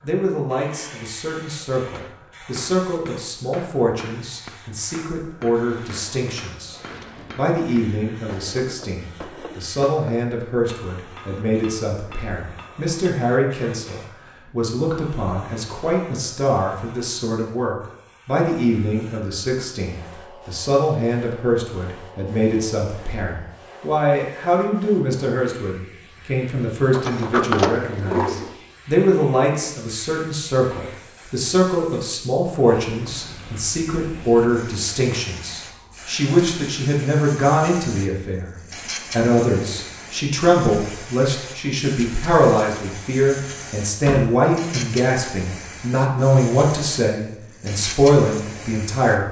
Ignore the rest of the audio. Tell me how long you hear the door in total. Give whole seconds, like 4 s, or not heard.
4 s.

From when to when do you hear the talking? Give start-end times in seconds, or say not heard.
0.0-49.2.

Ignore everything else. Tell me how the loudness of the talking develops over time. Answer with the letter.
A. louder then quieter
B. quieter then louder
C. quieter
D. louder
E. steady
D.